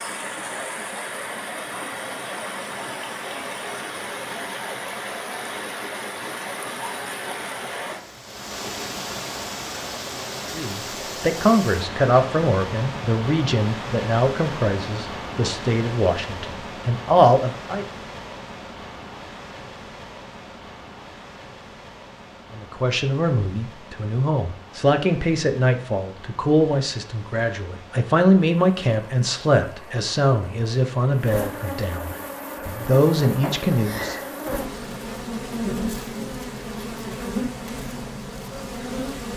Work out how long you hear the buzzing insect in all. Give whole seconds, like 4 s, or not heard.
8 s.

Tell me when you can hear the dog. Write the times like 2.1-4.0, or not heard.
not heard.